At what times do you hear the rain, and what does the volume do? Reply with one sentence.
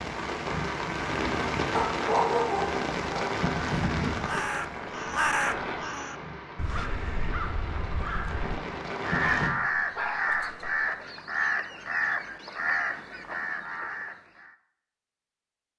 The rain can be heard from 0.0 to 9.5 s, getting quieter.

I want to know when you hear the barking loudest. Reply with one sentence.
The volume of the barking peaks at 2 seconds.